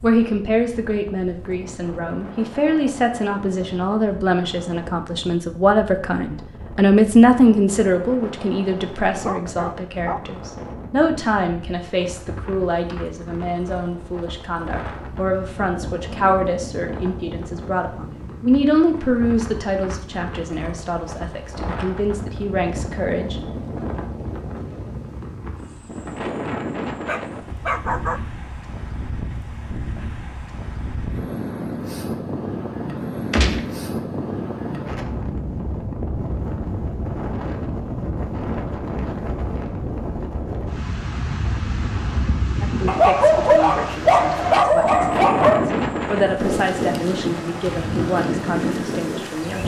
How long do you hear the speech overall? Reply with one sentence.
You can hear the speech for 30 seconds altogether.